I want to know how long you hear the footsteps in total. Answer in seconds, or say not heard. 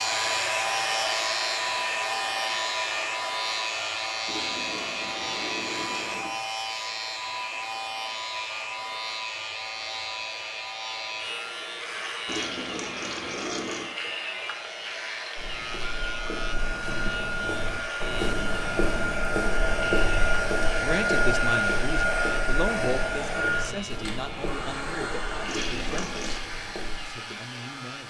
12 s.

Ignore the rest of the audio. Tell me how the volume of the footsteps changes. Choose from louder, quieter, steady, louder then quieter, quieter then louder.
louder then quieter.